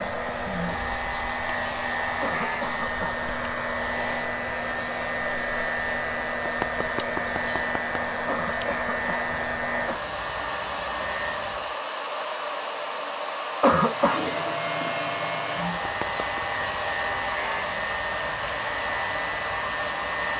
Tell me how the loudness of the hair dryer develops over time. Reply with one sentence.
The loudness of the hair dryer stays about the same.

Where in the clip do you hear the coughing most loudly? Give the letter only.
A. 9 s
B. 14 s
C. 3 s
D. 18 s
B.